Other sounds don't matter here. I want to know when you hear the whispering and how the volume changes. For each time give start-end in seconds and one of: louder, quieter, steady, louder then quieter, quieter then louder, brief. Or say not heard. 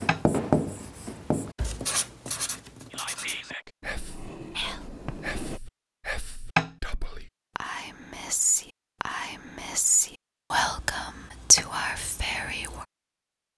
2.9-12.8 louder.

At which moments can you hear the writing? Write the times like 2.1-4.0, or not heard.
0.0-5.6.